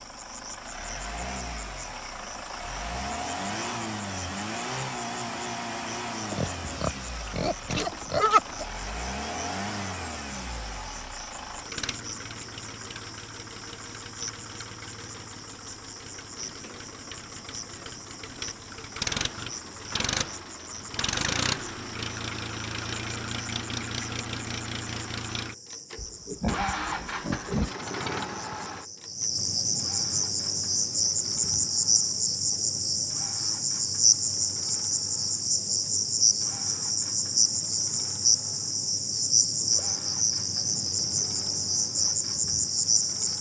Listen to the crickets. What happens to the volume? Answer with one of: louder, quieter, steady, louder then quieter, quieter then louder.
louder.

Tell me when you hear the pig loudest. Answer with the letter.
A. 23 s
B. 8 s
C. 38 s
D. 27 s
B.